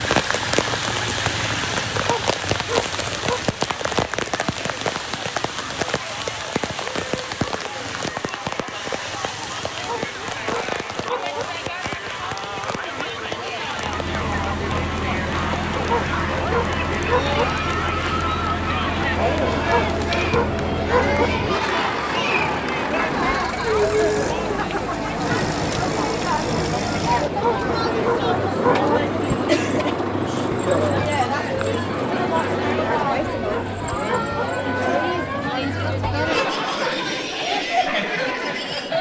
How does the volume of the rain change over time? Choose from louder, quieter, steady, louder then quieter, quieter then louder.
quieter.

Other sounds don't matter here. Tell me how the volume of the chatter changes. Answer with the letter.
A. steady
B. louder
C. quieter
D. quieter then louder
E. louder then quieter
B.